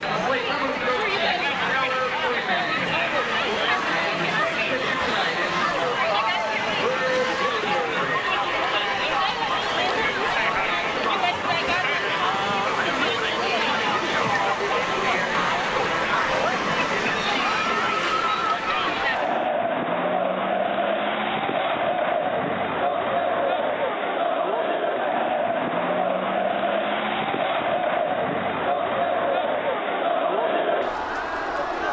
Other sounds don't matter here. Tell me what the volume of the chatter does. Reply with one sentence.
The loudness of the chatter stays about the same.